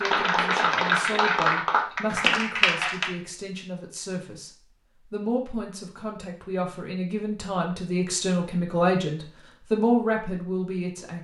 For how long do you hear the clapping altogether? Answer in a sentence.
You can hear the clapping for 3 seconds altogether.